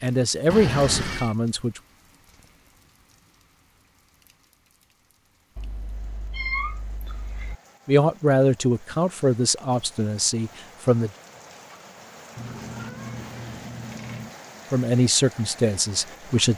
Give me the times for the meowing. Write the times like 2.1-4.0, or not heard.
0.5-1.4, 5.5-7.5, 12.3-14.3.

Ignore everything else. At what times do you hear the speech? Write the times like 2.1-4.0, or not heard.
0.0-1.8, 7.8-11.1, 14.7-16.5.